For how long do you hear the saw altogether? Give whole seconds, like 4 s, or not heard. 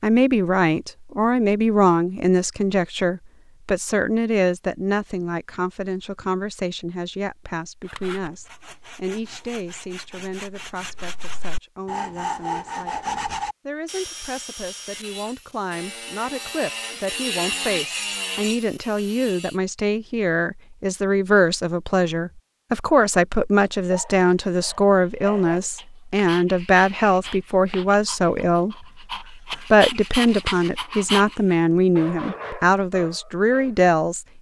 12 s.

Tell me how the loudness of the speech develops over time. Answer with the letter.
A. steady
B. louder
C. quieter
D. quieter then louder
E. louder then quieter
D.